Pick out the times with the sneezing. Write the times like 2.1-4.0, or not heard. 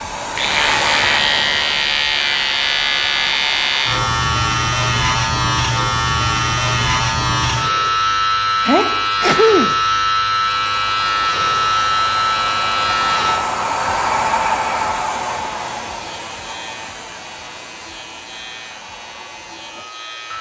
8.7-9.8.